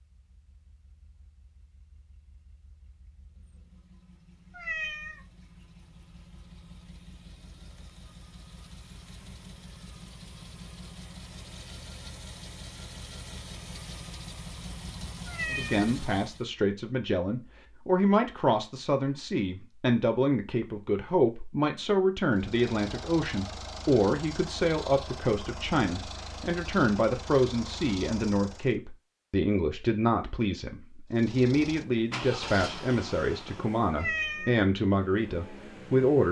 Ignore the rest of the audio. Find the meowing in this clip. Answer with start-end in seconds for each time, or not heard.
4.5-5.2, 15.2-15.8, 33.9-34.6.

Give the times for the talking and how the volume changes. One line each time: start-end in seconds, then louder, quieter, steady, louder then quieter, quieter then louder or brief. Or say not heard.
15.5-36.2 steady.